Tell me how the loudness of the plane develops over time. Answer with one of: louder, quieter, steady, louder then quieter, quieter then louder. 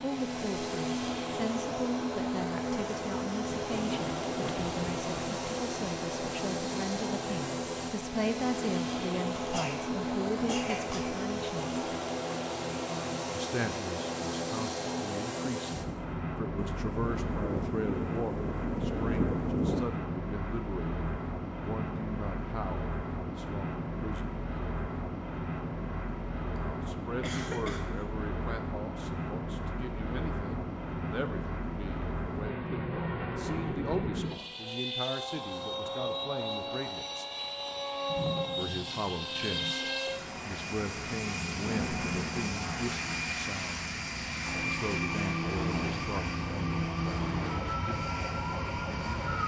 steady.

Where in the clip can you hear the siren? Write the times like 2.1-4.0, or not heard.
44.4-49.4.